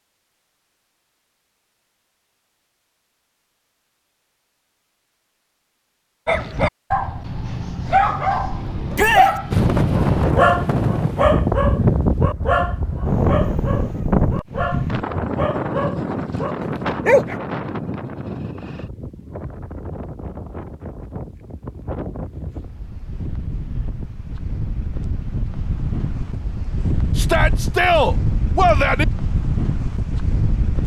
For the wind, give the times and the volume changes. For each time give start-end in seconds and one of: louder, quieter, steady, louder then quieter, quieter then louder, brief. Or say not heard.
9.5-30.8 quieter then louder.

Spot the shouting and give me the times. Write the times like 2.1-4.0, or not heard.
8.9-9.3, 27.1-29.1.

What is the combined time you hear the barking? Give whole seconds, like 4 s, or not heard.
11 s.